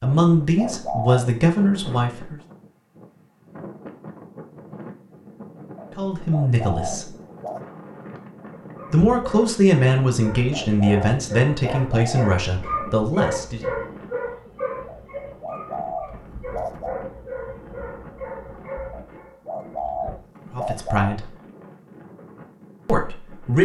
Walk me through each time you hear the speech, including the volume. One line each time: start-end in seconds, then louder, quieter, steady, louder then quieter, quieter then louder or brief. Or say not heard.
0.0-2.4 brief
6.0-7.1 brief
8.9-13.7 quieter
20.5-21.3 brief
22.9-23.5 brief.